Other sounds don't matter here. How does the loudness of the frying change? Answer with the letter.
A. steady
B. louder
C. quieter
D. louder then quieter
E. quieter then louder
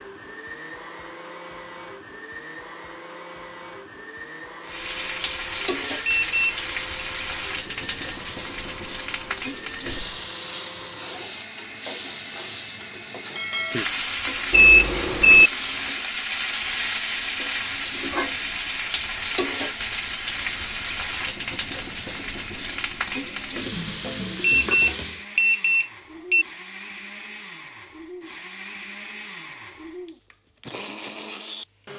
A.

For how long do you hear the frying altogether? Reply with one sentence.
You can hear the frying for 21 seconds altogether.